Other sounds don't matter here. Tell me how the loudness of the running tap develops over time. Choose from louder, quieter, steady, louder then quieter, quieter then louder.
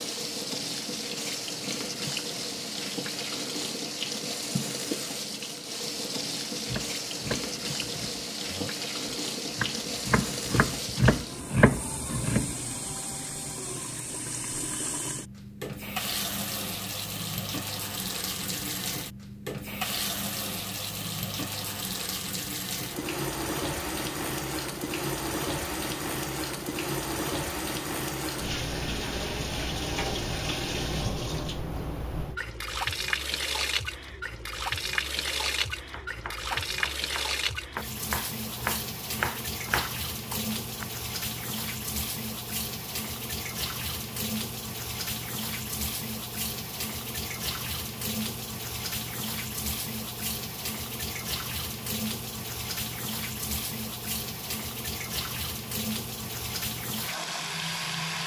steady.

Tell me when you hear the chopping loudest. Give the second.
12 s.